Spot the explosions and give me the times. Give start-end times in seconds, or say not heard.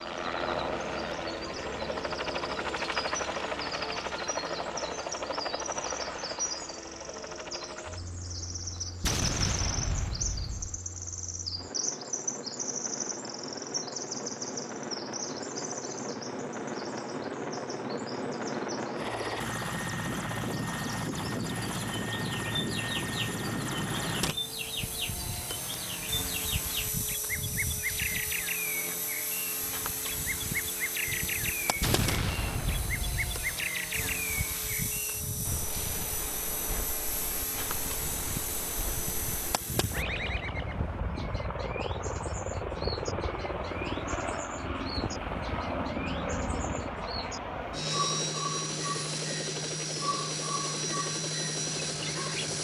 9.0-10.8, 31.8-33.5.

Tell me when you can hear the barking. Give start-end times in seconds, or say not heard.
not heard.